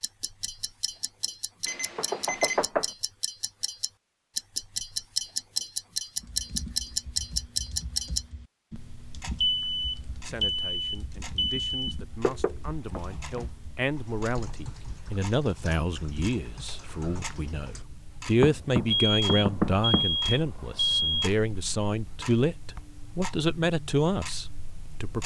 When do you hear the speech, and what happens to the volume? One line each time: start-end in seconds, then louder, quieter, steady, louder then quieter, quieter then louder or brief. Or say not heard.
10.2-25.2 louder.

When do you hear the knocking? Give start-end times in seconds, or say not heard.
1.9-2.9, 12.2-13.0, 18.4-20.1.